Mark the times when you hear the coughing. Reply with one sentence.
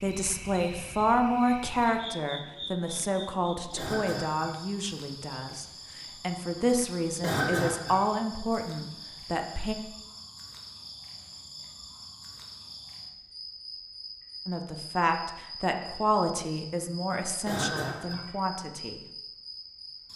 You can hear the coughing from 3.8 to 4.5 s, from 7.2 to 8.0 s and from 17.4 to 18.2 s.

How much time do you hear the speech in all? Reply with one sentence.
The speech can be heard for 14 seconds in total.